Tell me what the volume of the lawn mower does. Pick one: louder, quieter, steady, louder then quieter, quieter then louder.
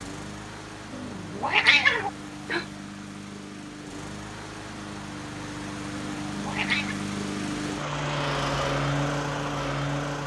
louder.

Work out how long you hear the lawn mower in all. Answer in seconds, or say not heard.
10 s.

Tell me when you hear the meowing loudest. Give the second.
2 s.